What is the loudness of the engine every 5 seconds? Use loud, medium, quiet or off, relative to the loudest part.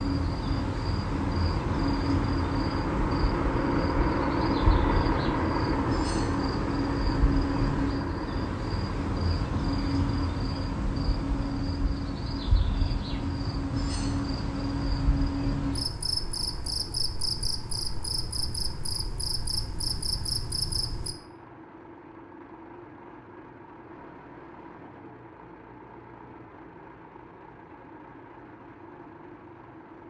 loud, loud, quiet, quiet, quiet, quiet.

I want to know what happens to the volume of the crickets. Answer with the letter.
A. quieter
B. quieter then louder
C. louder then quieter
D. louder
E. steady
E.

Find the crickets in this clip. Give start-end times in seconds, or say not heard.
0.0-21.1.